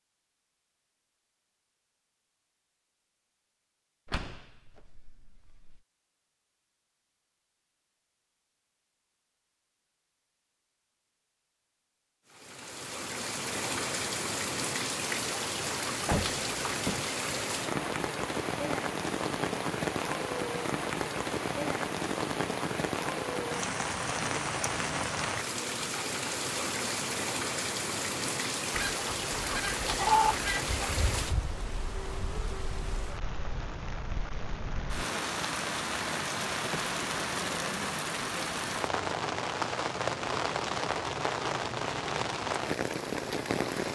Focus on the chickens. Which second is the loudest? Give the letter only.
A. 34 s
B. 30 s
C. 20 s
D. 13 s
B.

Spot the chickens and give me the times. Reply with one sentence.
You can hear the chickens from 28.7 to 31.5 s.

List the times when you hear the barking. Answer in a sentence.
The barking can't be heard in this clip.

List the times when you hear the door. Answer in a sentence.
You can hear the door from 4.0 to 5.8 s, from 16.1 to 17.1 s and from 36.1 to 36.9 s.